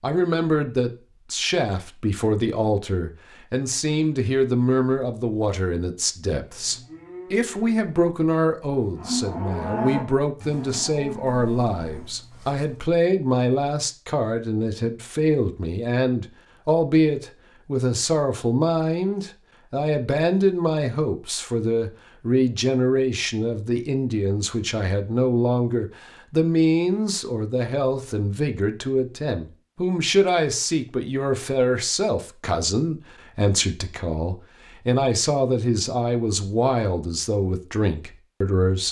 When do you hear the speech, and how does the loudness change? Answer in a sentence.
You can hear the speech from 0.0 to 38.8 s, at a steady volume.